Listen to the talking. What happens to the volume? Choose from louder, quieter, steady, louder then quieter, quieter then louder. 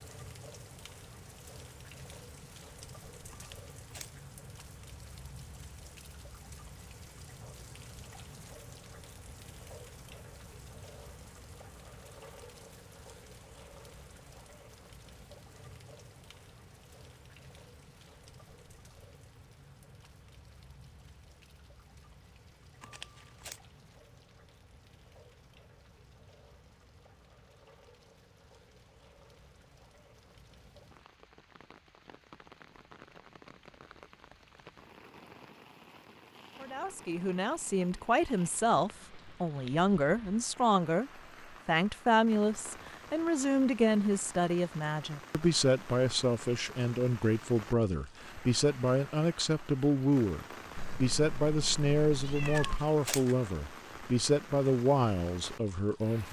steady.